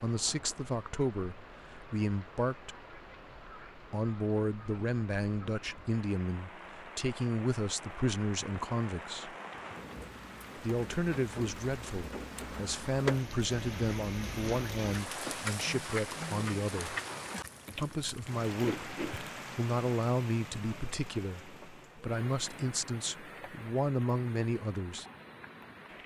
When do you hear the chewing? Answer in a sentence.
The chewing can be heard from 17.6 to 19.3 s.